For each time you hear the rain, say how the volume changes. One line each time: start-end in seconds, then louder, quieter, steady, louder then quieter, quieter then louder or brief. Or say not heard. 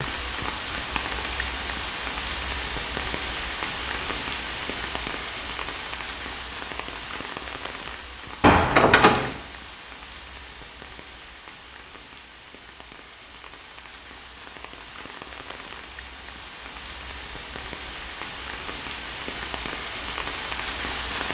0.0-21.3 quieter then louder.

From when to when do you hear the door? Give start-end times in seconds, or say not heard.
8.4-9.3.